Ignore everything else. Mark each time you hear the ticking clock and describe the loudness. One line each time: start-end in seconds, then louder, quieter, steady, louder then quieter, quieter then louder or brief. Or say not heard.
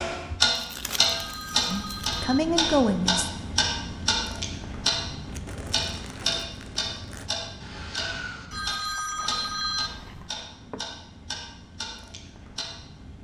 0.0-13.1 quieter.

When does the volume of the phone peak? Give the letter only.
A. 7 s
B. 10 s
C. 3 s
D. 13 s
B.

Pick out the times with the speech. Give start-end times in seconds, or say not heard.
1.6-3.3.